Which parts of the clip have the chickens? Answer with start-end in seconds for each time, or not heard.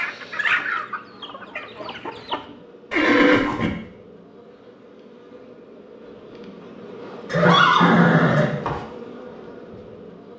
0.0-2.5.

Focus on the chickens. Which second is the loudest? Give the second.
1 s.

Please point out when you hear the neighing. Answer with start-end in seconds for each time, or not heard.
2.9-3.7, 7.3-8.8.